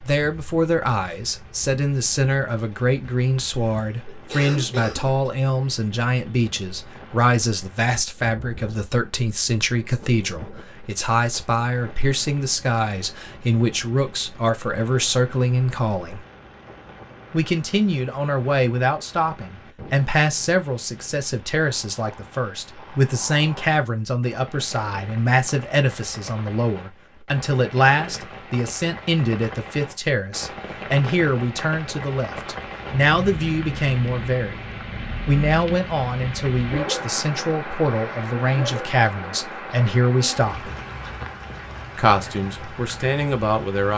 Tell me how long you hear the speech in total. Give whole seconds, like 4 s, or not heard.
41 s.